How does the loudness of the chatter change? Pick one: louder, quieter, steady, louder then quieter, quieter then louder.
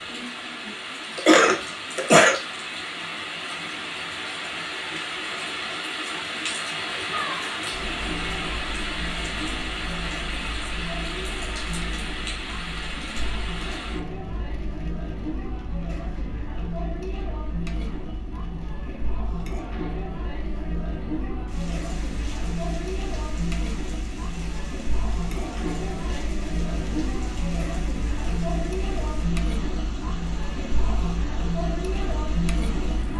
louder.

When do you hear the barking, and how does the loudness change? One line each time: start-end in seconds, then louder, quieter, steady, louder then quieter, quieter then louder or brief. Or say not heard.
not heard.